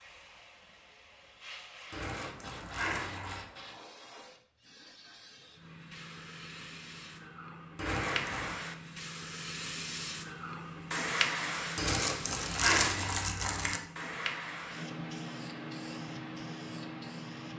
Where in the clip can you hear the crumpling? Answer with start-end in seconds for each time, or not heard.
1.9-3.5, 7.8-8.6, 11.8-13.8.